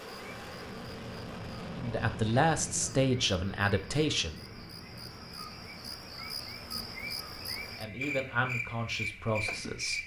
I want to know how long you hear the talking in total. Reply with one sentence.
The talking can be heard for 5 seconds in total.